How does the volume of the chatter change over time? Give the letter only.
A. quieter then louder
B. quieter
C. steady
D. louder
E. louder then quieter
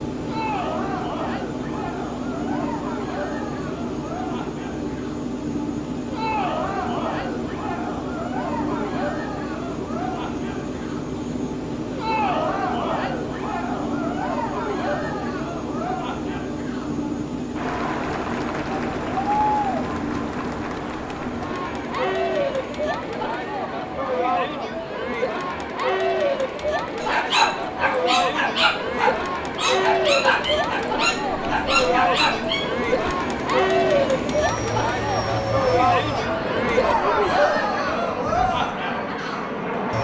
D.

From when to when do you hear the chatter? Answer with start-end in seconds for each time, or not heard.
0.1-39.8.